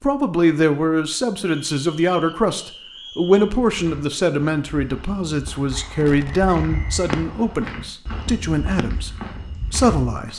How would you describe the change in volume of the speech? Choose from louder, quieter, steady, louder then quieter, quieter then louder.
steady.